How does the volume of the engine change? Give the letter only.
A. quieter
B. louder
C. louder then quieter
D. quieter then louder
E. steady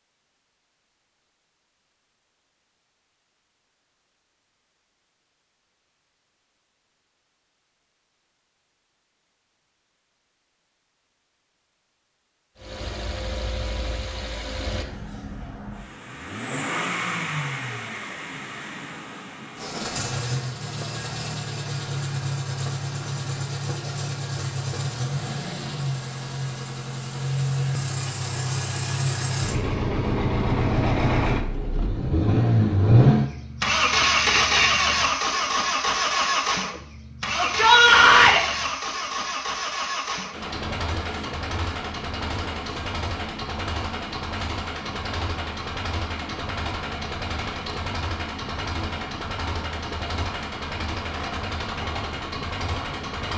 C.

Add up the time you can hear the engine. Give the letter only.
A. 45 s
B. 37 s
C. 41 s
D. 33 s
C.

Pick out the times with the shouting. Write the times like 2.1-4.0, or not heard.
37.4-38.4.